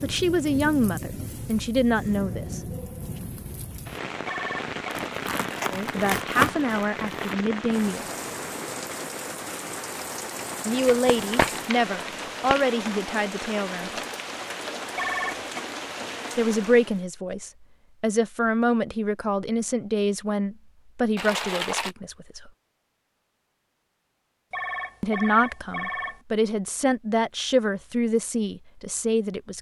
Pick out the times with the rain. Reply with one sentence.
The rain can be heard from 0.0 to 17.1 s.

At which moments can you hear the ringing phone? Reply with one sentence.
You can hear the ringing phone from 4.2 to 4.7 s, from 14.9 to 15.4 s and from 24.5 to 26.2 s.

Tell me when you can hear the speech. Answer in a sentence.
The speech can be heard from 0.0 to 2.6 s, from 5.7 to 8.1 s, from 10.7 to 14.0 s, from 16.4 to 22.5 s and from 25.0 to 29.5 s.